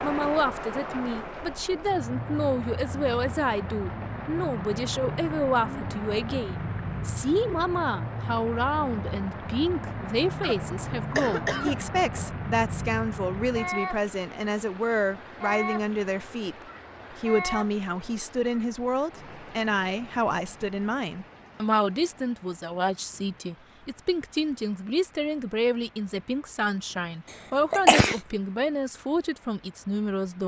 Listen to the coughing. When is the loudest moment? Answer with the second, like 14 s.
28 s.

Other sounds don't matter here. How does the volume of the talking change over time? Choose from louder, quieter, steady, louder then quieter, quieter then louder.
steady.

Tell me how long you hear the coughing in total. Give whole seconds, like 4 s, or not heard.
2 s.